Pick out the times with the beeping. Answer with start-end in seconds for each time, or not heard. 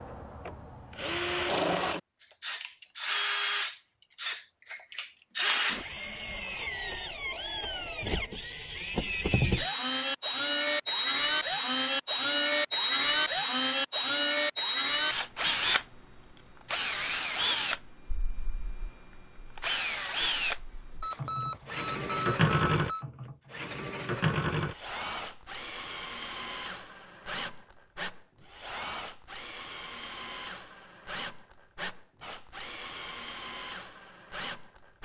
21.0-23.1.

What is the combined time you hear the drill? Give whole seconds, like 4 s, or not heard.
35 s.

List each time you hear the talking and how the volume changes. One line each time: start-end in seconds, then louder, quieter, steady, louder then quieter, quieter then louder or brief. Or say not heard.
not heard.